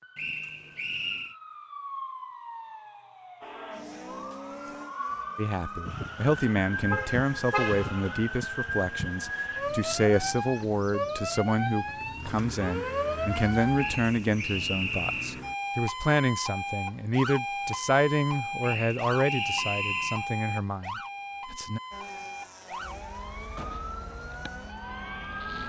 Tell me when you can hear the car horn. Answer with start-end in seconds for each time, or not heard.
6.9-8.2.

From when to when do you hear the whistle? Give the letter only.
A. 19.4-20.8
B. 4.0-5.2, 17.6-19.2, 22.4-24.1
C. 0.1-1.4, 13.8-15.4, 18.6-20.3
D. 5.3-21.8
C.